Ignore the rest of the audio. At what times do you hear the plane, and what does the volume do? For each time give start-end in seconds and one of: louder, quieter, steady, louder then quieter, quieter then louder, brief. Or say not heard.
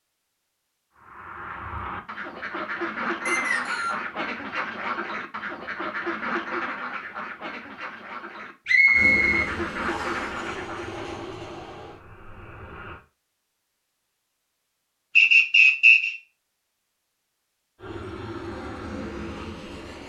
8.9-13.0 quieter
17.8-20.0 brief.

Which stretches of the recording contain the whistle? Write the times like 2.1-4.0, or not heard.
3.2-4.0, 8.7-10.2, 15.2-16.1.